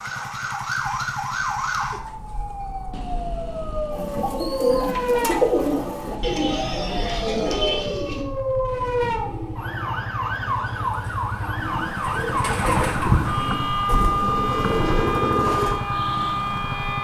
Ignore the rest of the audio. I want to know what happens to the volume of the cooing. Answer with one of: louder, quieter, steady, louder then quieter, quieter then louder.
quieter then louder.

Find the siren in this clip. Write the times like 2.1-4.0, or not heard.
0.0-16.9.